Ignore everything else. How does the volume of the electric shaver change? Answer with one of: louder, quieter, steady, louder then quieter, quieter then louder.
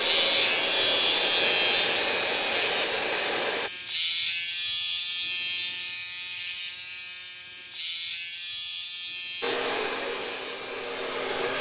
quieter.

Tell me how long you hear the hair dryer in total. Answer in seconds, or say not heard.
6 s.